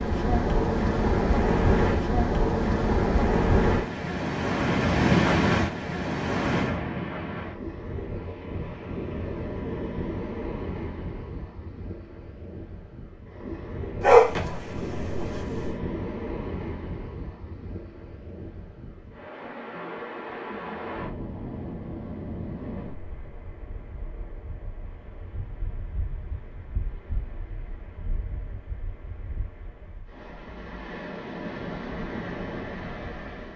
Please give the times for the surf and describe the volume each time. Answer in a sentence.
You can hear the surf from 0.0 to 33.5 s, getting quieter.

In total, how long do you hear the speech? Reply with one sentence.
You can't hear the speech here.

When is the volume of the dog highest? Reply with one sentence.
The loudest moment of the dog is at 14 seconds.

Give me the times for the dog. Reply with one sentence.
You can hear the dog from 14.0 to 15.7 s.